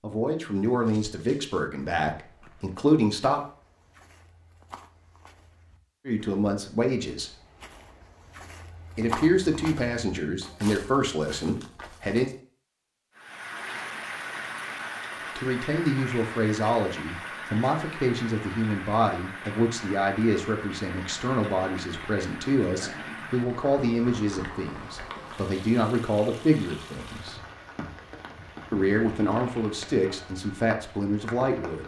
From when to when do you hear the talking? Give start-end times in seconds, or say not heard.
0.0-3.4, 6.0-7.3, 8.9-12.3, 15.3-27.4, 28.7-31.8.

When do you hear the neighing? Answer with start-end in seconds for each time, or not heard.
not heard.